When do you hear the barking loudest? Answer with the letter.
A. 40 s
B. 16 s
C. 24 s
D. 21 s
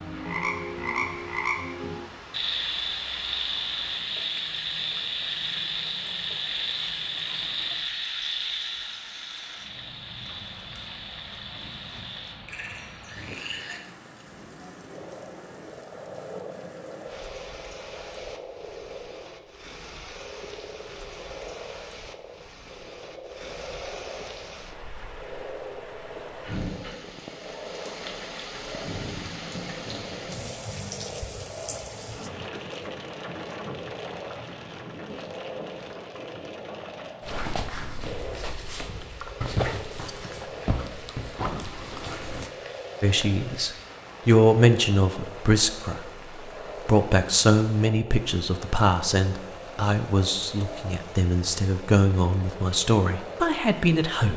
A.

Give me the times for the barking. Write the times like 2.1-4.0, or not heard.
37.2-42.5.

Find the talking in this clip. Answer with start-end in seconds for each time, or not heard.
43.0-46.0, 46.9-54.3.